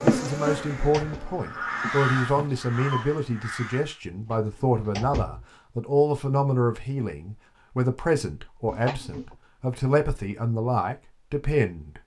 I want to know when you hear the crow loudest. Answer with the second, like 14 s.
2 s.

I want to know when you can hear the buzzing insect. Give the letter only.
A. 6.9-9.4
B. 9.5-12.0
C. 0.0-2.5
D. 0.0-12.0
C.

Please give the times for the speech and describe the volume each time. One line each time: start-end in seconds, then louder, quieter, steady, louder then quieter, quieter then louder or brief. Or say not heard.
0.0-12.0 steady.